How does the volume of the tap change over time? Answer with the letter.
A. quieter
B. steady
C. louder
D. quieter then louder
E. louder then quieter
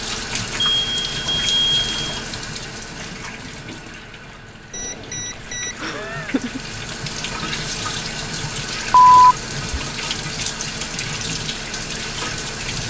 D.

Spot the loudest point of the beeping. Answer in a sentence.
The loudest moment of the beeping is at 9 seconds.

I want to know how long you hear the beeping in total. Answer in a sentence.
The beeping can be heard for 4 seconds in total.